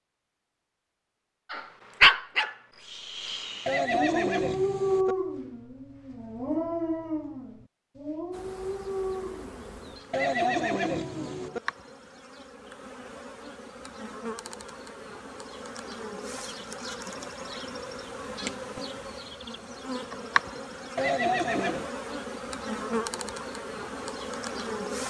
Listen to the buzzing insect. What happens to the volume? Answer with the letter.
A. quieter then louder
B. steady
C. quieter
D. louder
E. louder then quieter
D.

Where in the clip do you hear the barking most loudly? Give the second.
2 s.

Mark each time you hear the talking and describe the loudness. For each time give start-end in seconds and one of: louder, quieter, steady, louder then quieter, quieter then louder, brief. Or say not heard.
not heard.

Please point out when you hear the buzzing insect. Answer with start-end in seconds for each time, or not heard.
8.3-25.0.